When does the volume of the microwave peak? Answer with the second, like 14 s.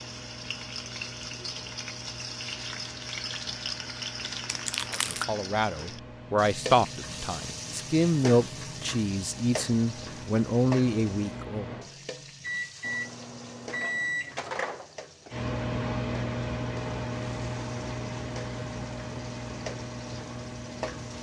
16 s.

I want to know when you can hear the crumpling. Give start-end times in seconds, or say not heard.
4.5-5.2.